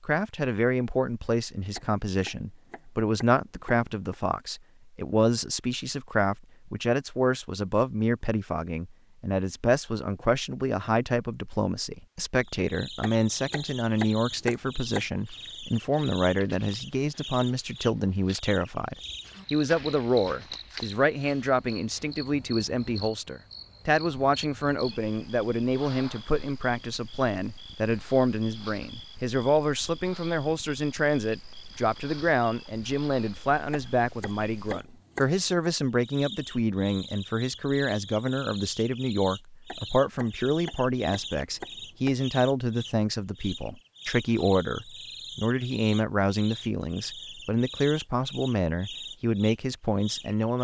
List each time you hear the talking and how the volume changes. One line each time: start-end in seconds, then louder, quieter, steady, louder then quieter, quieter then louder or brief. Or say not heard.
0.0-50.5 steady.